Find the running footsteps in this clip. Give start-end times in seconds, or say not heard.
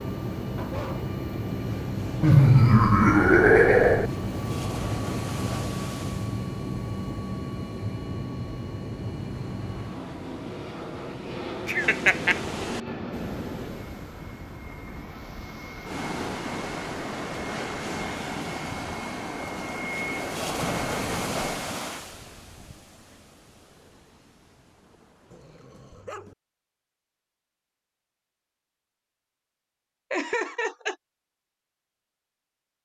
not heard.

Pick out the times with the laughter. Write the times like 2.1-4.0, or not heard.
2.2-4.1, 11.7-12.4, 30.1-30.9.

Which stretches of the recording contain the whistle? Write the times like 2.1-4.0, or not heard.
not heard.